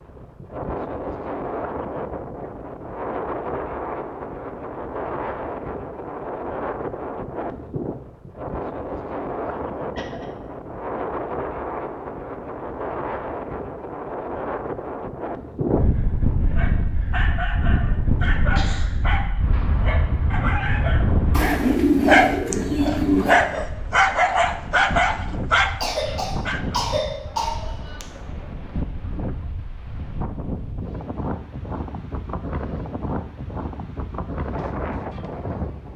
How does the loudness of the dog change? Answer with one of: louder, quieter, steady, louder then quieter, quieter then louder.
louder.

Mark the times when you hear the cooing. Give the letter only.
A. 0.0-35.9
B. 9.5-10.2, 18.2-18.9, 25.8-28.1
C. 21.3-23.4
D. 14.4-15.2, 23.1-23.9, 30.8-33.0
C.